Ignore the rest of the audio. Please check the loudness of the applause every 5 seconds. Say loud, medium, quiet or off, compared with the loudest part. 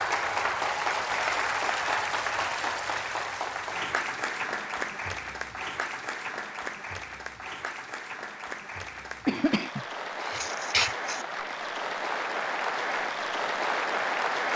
loud, medium, loud.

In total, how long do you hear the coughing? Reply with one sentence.
The coughing can be heard for 2 seconds in total.